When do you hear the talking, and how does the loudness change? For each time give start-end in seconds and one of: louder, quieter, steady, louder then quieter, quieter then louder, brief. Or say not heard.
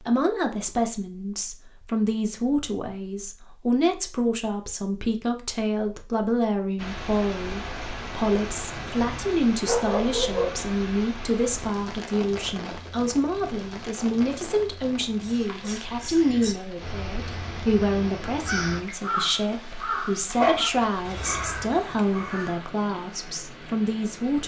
0.0-24.4 steady.